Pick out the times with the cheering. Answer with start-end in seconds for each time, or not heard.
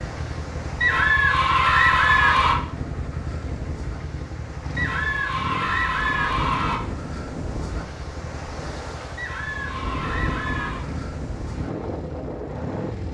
0.8-2.5, 4.8-6.8, 9.2-10.8.